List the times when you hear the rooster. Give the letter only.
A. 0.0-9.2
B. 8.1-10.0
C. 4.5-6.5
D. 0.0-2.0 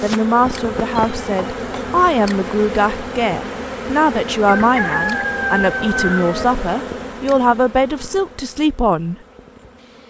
C.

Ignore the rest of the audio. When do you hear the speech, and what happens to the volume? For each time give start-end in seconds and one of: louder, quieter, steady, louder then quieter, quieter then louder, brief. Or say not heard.
0.0-9.2 steady.